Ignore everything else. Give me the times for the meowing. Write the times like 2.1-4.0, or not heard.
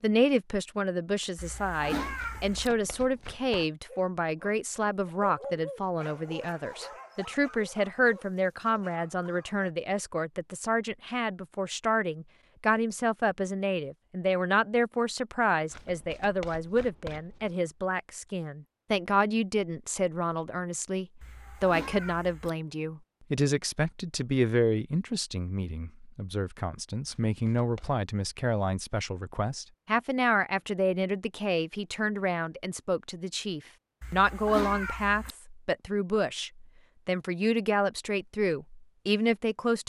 1.4-2.7, 21.2-22.5, 34.0-35.4.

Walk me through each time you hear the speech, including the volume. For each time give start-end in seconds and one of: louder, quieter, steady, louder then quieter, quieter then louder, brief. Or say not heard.
0.0-39.8 steady.